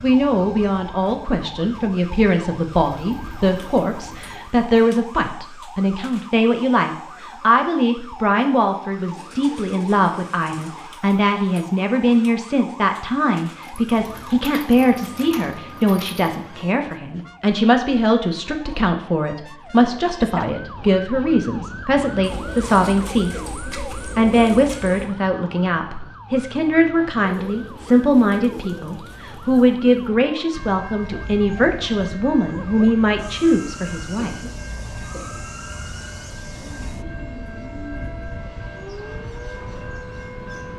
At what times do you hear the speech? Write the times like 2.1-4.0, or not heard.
0.0-34.4.